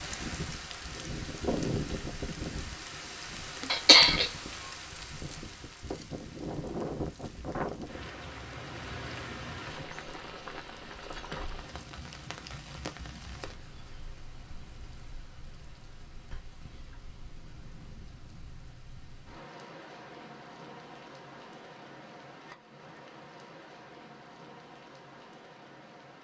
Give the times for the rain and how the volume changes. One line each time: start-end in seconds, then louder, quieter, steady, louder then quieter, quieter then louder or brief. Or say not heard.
0.0-26.1 quieter.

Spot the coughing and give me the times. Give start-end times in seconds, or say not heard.
3.7-4.3.